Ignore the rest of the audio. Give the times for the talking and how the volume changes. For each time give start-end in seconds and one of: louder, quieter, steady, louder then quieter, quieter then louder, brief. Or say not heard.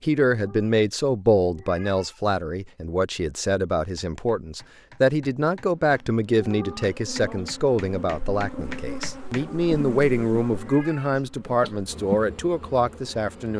0.0-13.5 steady.